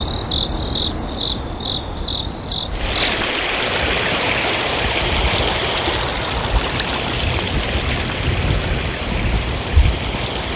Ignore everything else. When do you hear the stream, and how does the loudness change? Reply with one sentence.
You can hear the stream from 2.7 to 10.5 s, getting quieter.